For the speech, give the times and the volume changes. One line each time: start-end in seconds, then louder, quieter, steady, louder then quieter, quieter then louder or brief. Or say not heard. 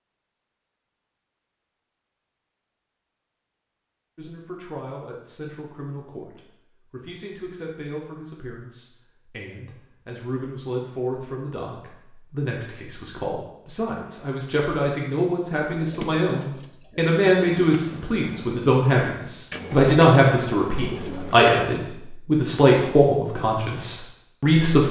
4.2-24.8 louder.